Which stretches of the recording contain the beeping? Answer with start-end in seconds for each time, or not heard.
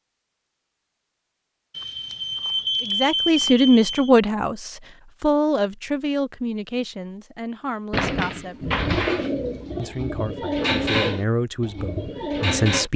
1.7-4.1.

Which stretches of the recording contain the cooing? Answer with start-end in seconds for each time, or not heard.
7.9-12.9.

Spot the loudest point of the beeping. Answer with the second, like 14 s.
3 s.